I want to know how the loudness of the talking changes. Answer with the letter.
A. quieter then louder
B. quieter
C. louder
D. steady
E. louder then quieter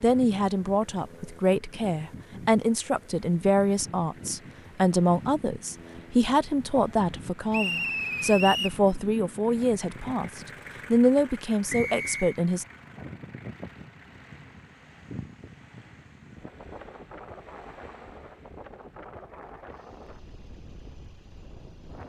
D.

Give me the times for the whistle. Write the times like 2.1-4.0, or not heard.
7.5-8.8, 11.7-12.3.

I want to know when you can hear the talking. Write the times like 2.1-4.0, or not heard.
0.0-12.7.